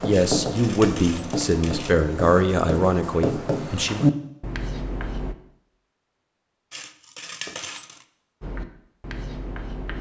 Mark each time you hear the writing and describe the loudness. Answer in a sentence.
You can hear the writing from 0.0 to 5.3 s, getting louder; and briefly from 8.4 to 9.9 s.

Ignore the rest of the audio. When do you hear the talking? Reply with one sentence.
You can hear the talking from 0.0 to 4.0 s.